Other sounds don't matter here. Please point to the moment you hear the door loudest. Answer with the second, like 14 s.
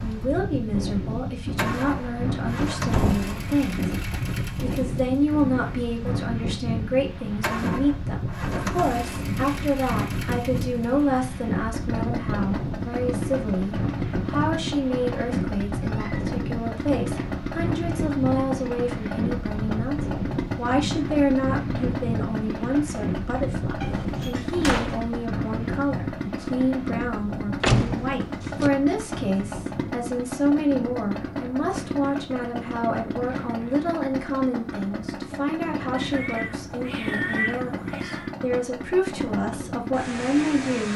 28 s.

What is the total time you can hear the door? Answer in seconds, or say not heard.
4 s.